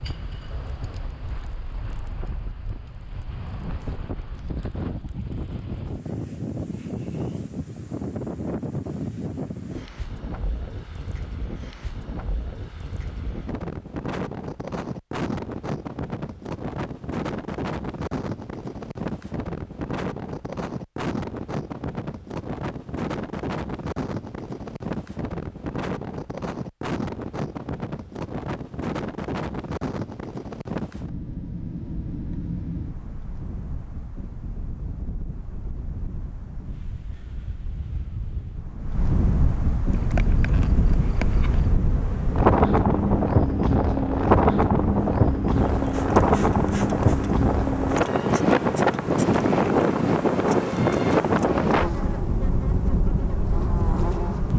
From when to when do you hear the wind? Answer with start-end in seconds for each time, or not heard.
0.0-54.5.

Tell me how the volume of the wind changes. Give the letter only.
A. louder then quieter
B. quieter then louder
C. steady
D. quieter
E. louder
E.